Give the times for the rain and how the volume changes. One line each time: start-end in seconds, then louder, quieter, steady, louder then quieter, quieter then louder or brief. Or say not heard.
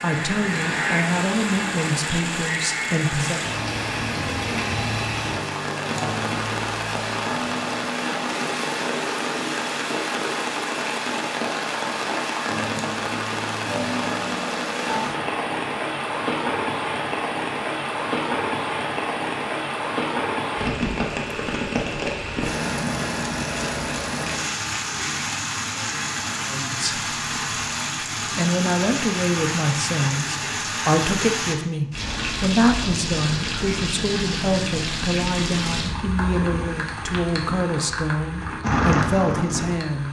0.0-40.0 steady.